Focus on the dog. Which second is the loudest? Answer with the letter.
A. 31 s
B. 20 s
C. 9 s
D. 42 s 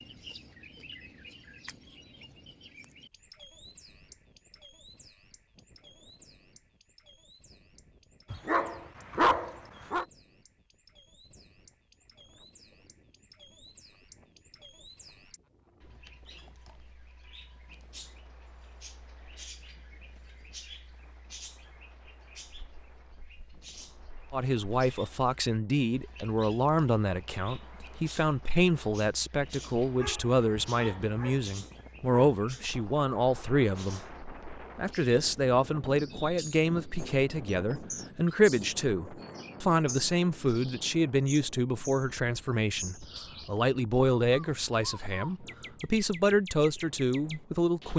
C.